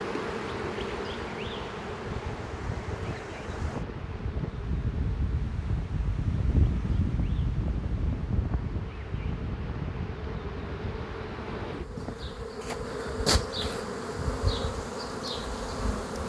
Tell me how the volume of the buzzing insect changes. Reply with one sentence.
The volume of the buzzing insect goes down, then up.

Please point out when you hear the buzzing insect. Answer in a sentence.
You can hear the buzzing insect from 0.0 to 16.2 s.